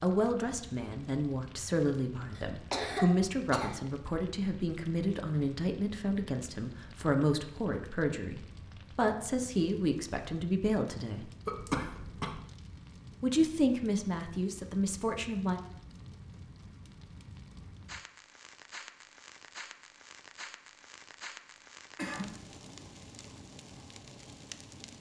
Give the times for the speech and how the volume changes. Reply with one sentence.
The speech can be heard from 0.0 to 11.3 s, at a steady volume; and briefly from 13.2 to 15.6 s.